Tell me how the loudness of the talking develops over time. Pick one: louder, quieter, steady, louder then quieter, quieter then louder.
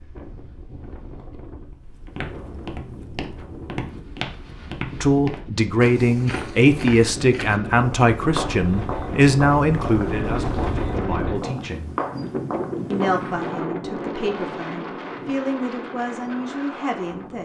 quieter.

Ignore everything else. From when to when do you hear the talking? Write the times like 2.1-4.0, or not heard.
4.9-11.9, 12.9-17.3.